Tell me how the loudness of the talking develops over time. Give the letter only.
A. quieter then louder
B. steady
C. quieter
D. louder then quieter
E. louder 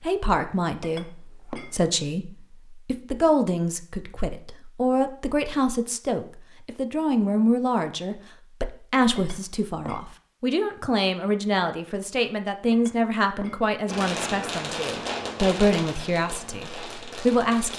B.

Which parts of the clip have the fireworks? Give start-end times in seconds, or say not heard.
13.8-17.7.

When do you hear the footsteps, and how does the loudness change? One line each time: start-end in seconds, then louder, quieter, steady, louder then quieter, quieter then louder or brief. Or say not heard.
not heard.